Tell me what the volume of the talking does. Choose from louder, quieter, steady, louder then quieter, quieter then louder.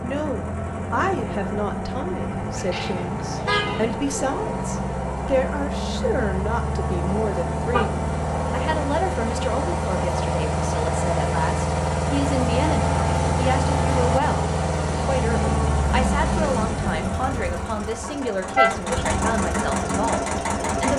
steady.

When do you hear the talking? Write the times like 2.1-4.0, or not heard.
0.0-20.9.